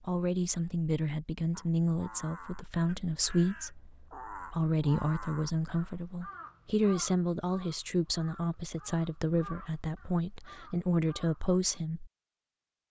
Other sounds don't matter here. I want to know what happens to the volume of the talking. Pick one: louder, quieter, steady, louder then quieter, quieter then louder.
steady.